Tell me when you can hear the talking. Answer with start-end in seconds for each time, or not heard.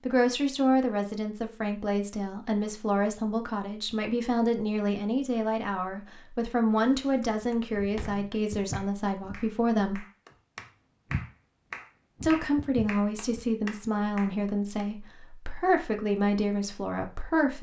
0.1-10.1, 12.2-17.5.